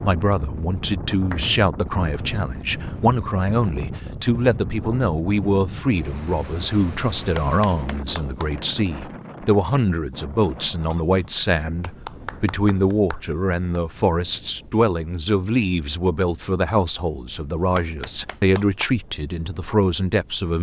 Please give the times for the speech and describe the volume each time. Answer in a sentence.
The speech can be heard from 0.0 to 20.5 s, at a steady volume.